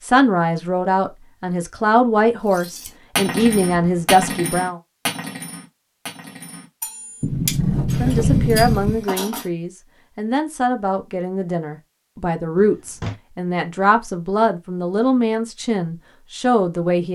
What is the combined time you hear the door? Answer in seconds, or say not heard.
3 s.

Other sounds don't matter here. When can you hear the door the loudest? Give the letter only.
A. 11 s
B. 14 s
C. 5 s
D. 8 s
D.